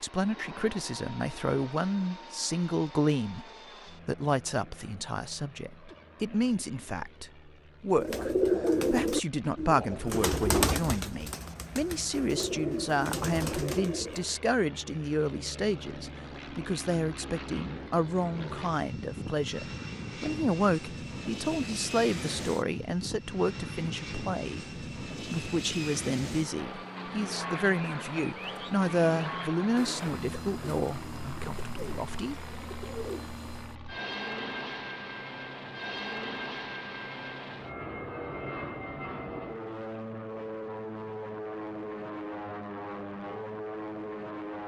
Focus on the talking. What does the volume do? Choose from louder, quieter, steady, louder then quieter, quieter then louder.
steady.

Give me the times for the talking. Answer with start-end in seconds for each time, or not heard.
0.0-3.5, 4.0-32.4.